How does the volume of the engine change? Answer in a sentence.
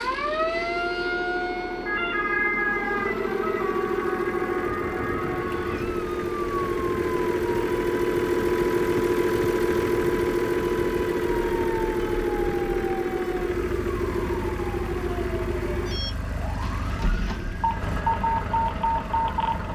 The loudness of the engine goes up, then down.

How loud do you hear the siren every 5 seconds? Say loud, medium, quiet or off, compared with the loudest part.
loud, medium, medium, loud.